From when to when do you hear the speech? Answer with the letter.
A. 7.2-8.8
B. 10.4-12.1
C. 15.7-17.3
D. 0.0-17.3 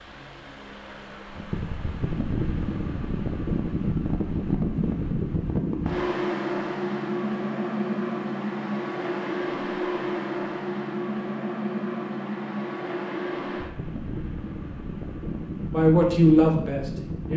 C.